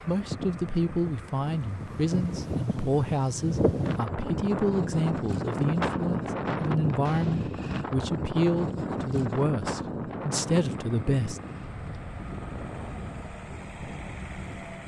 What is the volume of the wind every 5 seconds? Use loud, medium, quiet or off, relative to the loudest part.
loud, loud, medium.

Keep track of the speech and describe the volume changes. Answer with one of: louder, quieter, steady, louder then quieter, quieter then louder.
steady.